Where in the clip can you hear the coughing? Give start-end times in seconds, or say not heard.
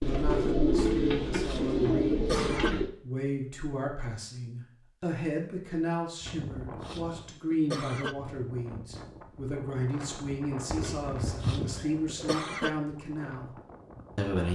0.8-2.8, 6.2-8.2, 10.8-12.7.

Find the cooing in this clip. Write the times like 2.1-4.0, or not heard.
0.0-2.9, 10.7-12.3.